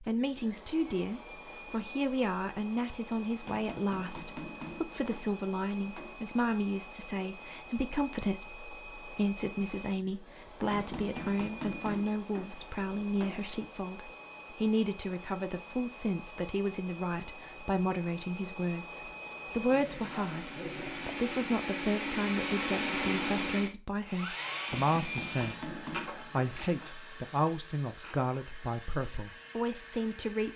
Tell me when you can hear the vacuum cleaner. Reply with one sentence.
You can hear the vacuum cleaner from 0.0 to 30.5 s.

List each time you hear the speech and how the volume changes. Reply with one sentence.
The speech can be heard from 0.0 to 30.5 s, at a steady volume.